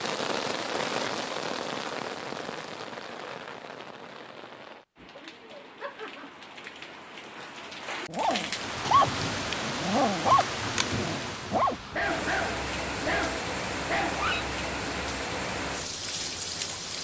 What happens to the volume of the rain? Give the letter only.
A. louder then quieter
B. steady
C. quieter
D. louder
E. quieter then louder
E.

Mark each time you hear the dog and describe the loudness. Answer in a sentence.
The dog can be heard from 8.1 to 14.4 s, getting quieter.